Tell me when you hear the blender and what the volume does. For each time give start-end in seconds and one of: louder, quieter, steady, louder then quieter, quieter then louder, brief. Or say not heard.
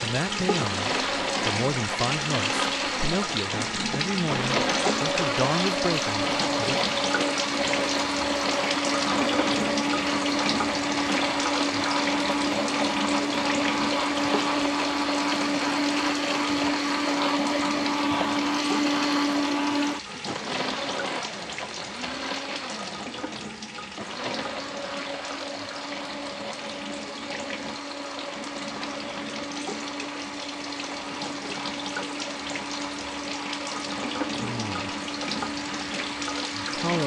0.0-37.0 quieter.